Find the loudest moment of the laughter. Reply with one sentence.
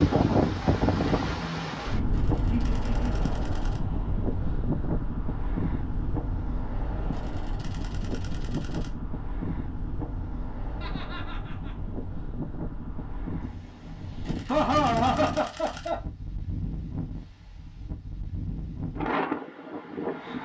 The loudest moment of the laughter is at 15 seconds.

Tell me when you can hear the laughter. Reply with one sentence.
The laughter can be heard from 1.9 to 3.1 s, from 10.8 to 11.8 s and from 14.4 to 16.0 s.